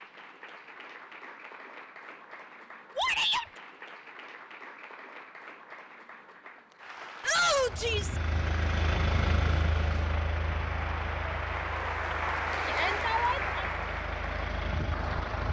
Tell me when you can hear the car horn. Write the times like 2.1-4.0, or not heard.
not heard.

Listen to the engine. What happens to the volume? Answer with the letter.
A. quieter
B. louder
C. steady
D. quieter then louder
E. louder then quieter
D.